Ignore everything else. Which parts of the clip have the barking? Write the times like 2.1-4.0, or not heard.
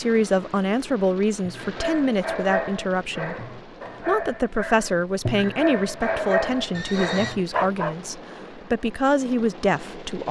1.4-8.0.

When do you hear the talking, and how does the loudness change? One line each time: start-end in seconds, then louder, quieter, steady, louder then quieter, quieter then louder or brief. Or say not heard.
0.0-10.2 steady.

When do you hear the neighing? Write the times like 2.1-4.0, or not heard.
6.7-7.3.